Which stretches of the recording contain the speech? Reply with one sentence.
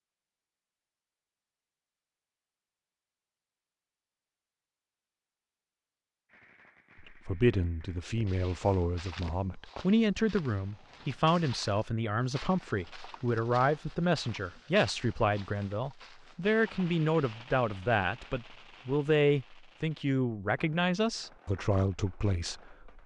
The speech can be heard from 7.2 to 23.0 s.